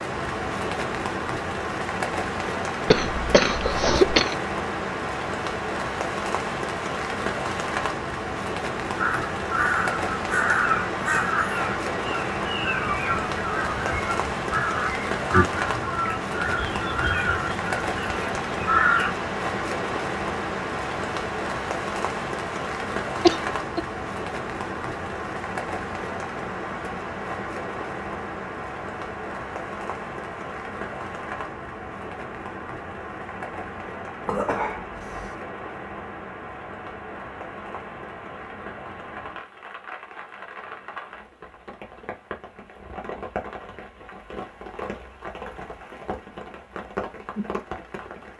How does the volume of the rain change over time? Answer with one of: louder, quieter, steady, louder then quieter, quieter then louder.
quieter.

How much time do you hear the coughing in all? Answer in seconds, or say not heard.
3 s.